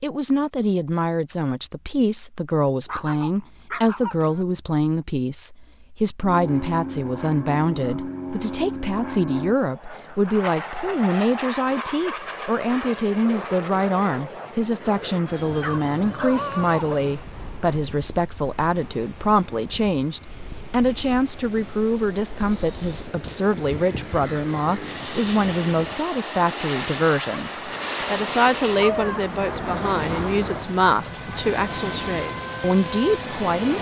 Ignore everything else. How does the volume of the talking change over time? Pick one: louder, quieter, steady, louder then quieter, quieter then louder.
steady.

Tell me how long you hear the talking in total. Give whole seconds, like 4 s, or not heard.
34 s.